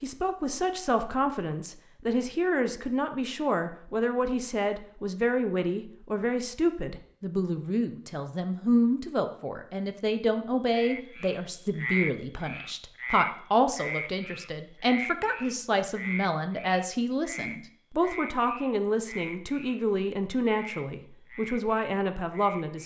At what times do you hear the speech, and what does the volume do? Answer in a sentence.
The speech can be heard from 0.0 to 22.8 s, at a steady volume.